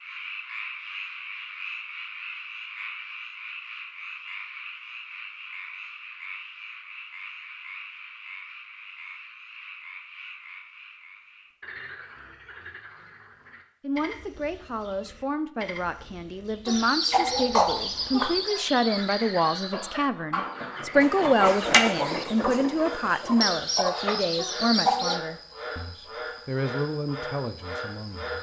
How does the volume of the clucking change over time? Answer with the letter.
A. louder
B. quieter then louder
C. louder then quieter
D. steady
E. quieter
B.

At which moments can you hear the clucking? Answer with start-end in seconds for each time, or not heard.
16.6-25.2.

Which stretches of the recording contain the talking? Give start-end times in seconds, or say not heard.
13.8-28.3.